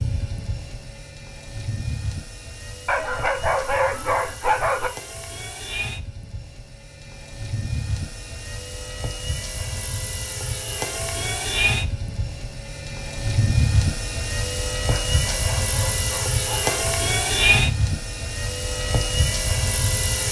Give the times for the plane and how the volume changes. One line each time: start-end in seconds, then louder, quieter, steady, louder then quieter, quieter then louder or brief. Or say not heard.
0.0-20.2 louder.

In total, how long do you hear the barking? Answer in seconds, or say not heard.
4 s.